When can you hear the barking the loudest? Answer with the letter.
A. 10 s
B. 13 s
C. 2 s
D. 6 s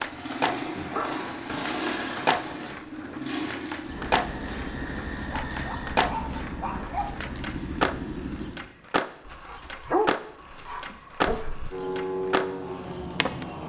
A.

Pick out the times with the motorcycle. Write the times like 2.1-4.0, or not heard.
0.0-8.6, 11.7-13.6.